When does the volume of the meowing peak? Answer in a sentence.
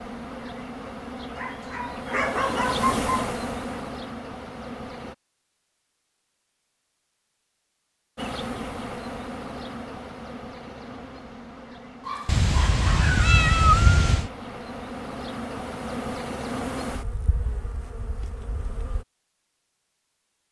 The volume of the meowing peaks at 14 seconds.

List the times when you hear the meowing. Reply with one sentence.
You can hear the meowing from 12.2 to 14.3 s.